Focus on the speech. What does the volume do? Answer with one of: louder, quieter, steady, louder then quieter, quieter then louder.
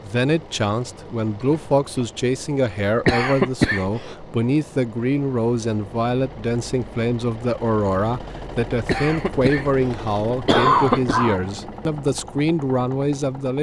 steady.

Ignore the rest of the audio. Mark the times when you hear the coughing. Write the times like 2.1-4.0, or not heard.
3.0-4.2, 8.8-11.4.